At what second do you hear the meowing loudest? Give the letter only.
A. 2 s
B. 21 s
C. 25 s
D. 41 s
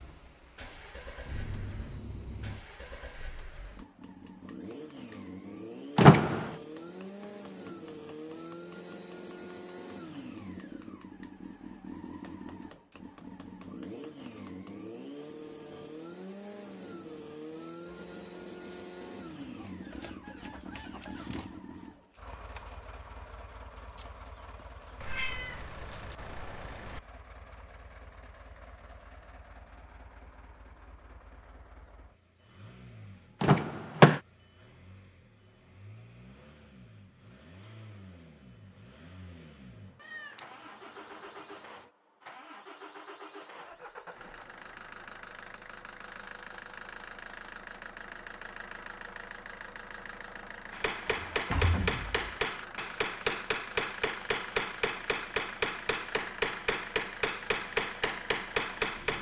C.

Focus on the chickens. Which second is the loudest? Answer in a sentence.
The loudest moment of the chickens is at 21 seconds.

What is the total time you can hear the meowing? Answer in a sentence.
You can hear the meowing for 5 seconds altogether.